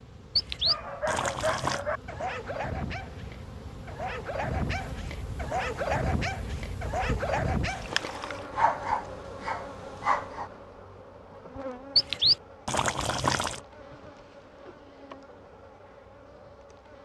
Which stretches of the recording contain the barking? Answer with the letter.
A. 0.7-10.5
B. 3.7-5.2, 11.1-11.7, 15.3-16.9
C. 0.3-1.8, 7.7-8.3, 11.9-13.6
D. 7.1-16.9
A.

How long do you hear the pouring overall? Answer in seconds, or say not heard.
4 s.